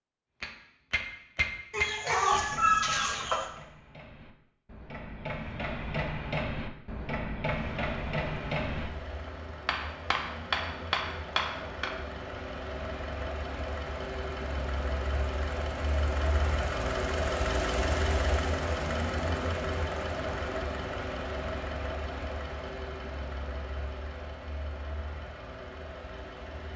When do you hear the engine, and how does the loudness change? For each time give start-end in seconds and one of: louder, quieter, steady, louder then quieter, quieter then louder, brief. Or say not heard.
7.5-26.7 louder then quieter.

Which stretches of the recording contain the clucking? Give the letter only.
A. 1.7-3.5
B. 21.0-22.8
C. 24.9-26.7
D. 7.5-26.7
A.